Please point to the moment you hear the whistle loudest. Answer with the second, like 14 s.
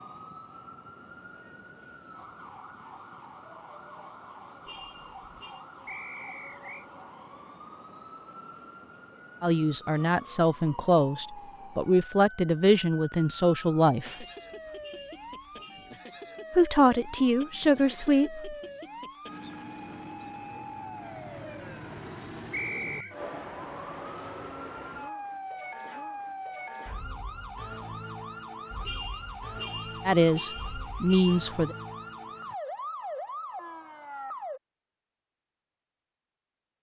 23 s.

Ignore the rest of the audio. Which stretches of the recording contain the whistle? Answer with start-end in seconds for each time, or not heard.
5.8-6.8, 22.5-23.1.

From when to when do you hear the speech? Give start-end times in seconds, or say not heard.
9.4-14.2, 16.5-18.6, 30.1-31.8.